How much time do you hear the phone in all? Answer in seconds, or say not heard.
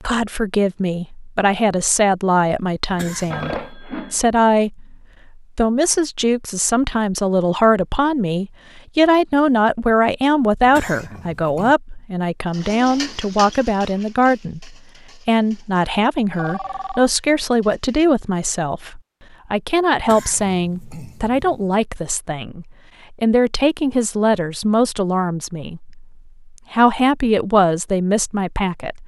2 s.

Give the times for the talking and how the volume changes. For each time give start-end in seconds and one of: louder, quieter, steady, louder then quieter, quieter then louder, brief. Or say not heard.
0.0-29.0 steady.